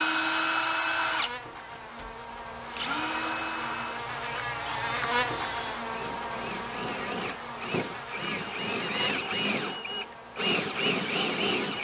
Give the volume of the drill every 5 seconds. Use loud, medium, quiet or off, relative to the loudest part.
loud, medium, loud.